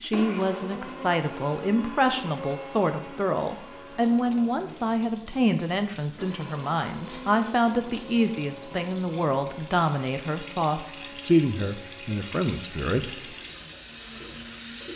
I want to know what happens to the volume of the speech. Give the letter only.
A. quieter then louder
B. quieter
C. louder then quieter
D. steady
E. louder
D.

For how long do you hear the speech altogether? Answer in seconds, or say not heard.
13 s.